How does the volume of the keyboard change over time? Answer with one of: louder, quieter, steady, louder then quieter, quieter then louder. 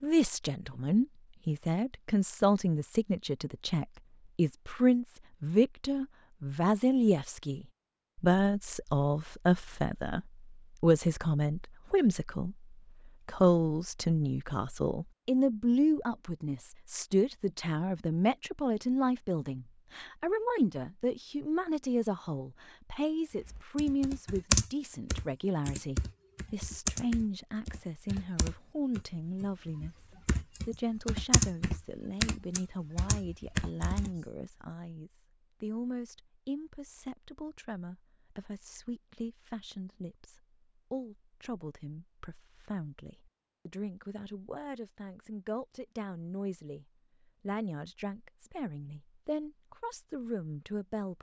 quieter then louder.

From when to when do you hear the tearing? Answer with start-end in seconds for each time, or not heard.
not heard.